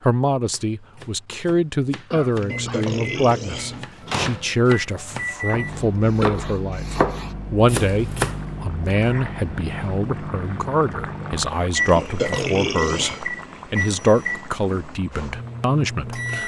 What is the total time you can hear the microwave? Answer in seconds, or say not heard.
14 s.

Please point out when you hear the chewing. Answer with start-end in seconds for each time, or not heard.
not heard.